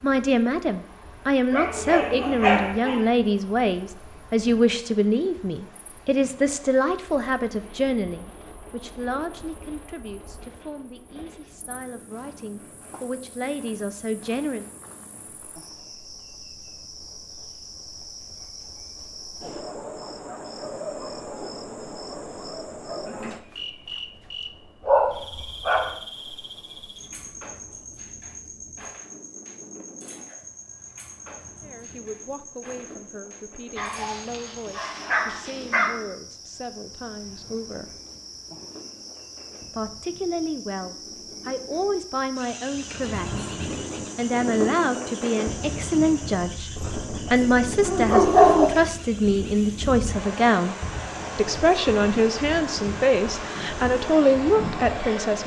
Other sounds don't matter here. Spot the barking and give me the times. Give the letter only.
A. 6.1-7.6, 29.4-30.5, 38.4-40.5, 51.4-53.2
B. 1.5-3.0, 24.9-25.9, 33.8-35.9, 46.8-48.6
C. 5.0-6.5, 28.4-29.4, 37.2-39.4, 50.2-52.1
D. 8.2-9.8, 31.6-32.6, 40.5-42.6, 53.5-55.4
B.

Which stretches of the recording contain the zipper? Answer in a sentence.
The zipper can't be heard in this clip.